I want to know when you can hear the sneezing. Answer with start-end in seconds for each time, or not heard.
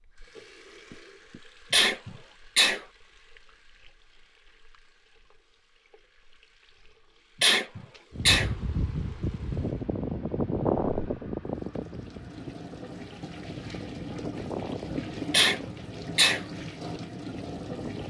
1.7-2.8, 7.4-8.5, 15.3-16.4.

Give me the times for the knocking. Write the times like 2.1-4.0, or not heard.
0.9-1.4.